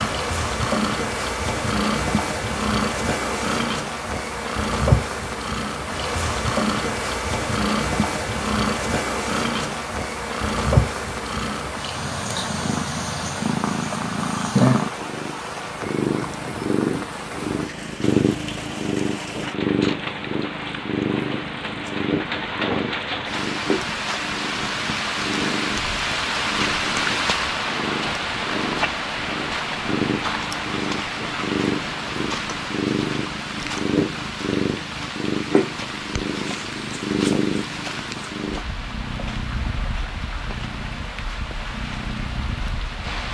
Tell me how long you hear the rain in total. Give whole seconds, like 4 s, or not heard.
43 s.